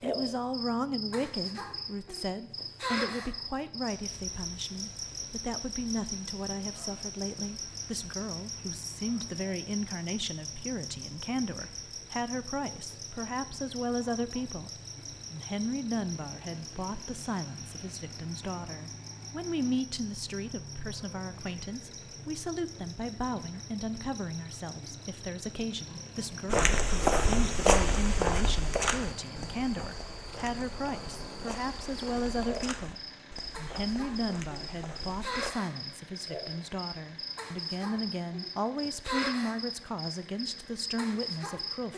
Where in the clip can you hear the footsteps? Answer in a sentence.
The footsteps can be heard from 26.4 to 35.5 s.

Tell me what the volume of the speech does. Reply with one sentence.
The volume of the speech stays about the same.